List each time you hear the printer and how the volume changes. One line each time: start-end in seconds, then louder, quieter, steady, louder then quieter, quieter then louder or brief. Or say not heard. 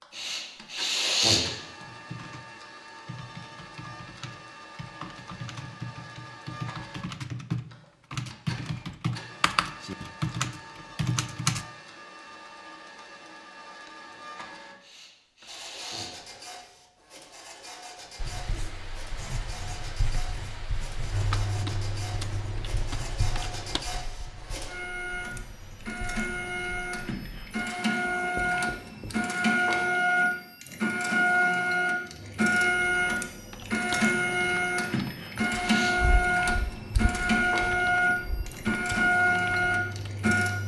0.0-40.6 louder.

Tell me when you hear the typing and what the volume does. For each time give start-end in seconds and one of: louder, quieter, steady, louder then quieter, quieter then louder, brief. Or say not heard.
1.4-2.5 brief
3.0-11.7 louder
21.1-23.9 brief
32.1-40.6 steady.